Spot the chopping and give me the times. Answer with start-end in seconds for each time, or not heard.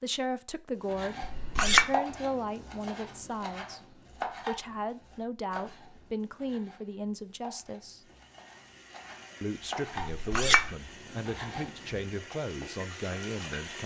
0.8-12.3.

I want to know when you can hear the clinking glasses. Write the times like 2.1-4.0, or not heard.
1.2-1.9, 10.1-10.7.